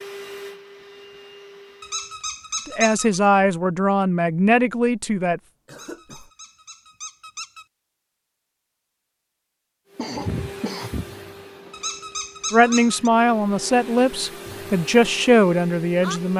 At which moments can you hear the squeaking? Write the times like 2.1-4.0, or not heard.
1.8-3.2, 5.7-7.7, 11.7-13.1.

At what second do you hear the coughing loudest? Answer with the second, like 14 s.
10 s.